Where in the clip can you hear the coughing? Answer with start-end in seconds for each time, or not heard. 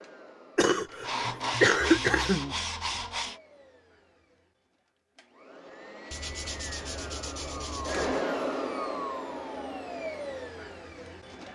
0.6-2.5.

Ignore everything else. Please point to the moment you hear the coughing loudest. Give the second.
2 s.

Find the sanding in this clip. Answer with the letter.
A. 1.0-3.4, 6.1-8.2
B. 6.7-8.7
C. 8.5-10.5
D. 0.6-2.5
A.